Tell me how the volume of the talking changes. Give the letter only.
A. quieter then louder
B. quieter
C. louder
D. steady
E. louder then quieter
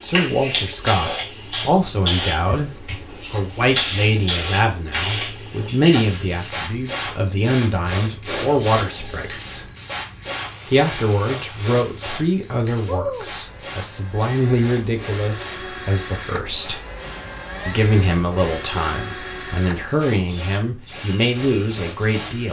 D.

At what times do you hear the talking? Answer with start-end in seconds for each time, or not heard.
0.0-9.7, 10.7-16.8, 17.6-22.4.